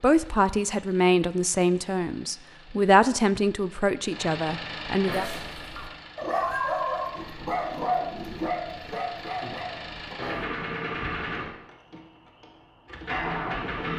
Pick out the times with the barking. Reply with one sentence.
You can hear the barking from 5.1 to 10.5 s.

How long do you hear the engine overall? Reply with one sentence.
The engine can be heard for 14 seconds in total.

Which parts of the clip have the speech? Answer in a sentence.
The speech can be heard from 0.0 to 5.2 s.